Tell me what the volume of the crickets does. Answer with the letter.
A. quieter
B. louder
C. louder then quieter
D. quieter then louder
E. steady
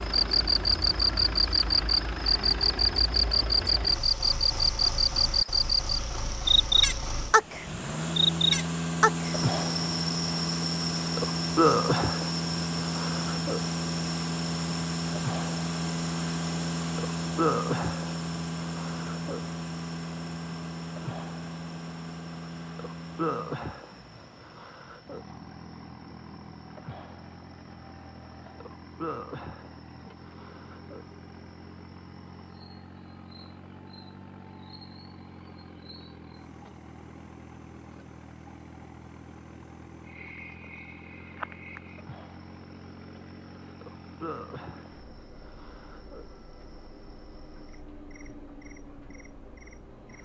D.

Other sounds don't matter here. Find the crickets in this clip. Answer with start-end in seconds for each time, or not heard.
0.1-50.2.